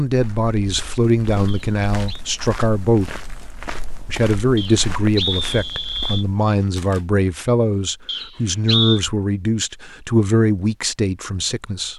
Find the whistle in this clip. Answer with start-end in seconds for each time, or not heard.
1.4-2.2, 4.5-6.2, 8.1-9.0.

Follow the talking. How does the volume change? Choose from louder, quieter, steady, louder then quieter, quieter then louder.
steady.